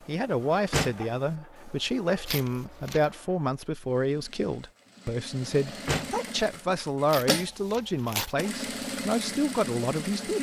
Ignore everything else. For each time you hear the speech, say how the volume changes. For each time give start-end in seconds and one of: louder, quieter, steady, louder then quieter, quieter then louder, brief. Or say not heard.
0.1-10.3 steady.